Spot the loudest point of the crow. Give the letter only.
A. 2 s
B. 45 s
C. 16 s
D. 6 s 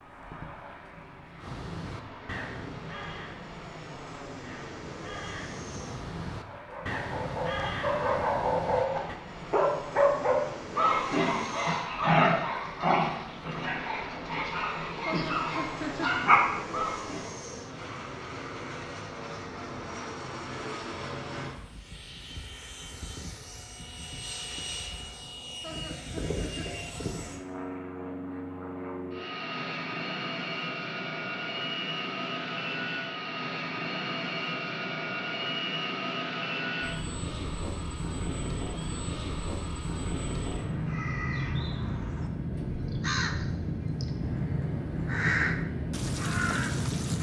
B.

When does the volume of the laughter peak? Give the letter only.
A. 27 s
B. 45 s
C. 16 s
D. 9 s
C.